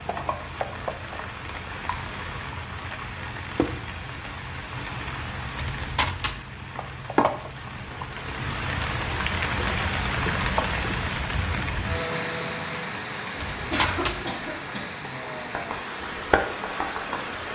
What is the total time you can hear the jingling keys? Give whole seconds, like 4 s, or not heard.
2 s.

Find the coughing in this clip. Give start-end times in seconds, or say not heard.
13.7-14.9.